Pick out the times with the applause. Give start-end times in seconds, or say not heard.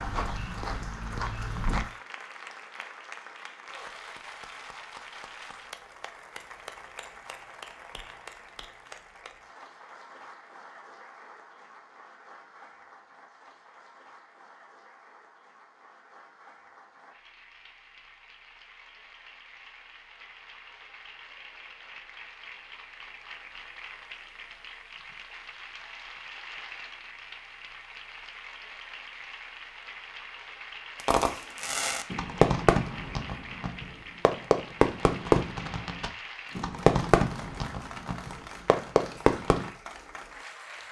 0.0-40.8.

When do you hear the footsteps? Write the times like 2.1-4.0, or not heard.
0.0-1.9.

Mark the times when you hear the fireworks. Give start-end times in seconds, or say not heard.
31.1-39.7.